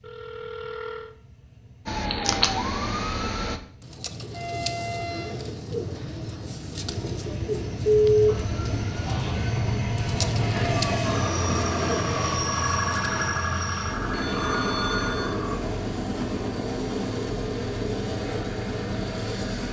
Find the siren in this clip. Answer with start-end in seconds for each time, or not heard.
1.9-3.6, 8.2-15.6.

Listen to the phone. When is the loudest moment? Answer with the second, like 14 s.
8 s.